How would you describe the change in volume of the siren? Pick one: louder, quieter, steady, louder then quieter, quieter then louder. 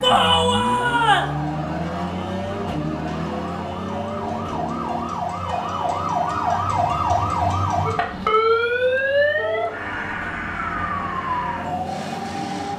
louder then quieter.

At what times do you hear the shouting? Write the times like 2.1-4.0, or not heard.
0.0-1.4, 5.4-6.8, 9.3-9.8.